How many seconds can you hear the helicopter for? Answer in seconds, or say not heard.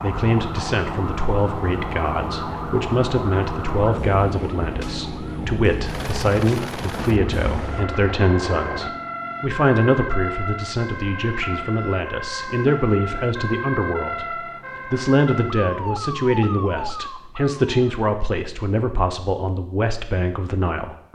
9 s.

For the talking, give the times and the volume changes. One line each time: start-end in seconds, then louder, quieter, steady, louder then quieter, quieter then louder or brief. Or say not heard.
0.0-21.1 steady.